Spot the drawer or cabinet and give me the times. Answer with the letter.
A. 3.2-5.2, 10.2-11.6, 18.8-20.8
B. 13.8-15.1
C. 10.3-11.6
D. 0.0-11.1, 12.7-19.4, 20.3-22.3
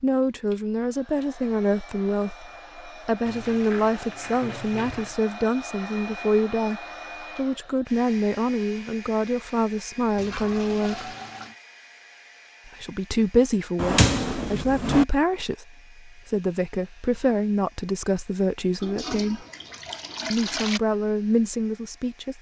B.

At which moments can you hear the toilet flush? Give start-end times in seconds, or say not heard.
3.2-5.2, 10.2-11.6, 18.8-20.8.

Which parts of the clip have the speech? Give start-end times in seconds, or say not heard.
0.0-11.1, 12.7-19.4, 20.3-22.3.